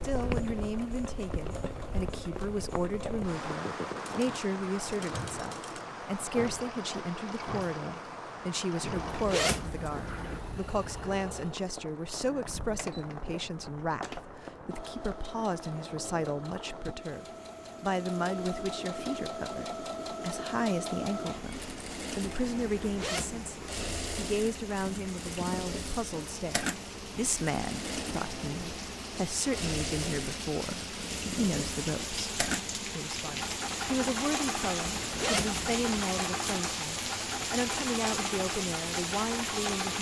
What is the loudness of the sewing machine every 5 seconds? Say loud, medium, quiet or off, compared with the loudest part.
medium, medium, medium, loud, loud, loud, loud, loud.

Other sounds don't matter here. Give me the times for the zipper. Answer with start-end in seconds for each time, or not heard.
8.9-10.4, 22.8-23.6, 34.9-36.0.